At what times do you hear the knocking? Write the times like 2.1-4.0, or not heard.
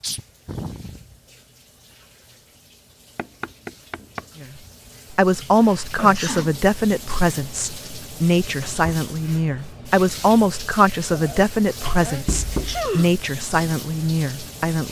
3.1-4.7, 12.1-12.9.